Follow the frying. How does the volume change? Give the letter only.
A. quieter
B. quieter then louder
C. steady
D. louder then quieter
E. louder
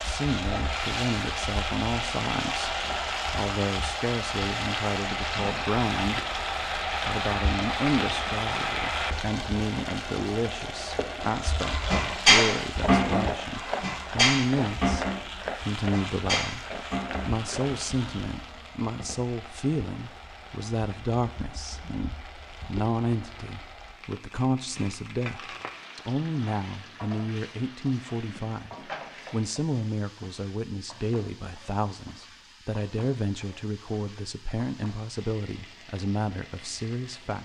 A.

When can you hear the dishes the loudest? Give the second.
12 s.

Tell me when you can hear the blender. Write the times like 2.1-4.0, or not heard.
not heard.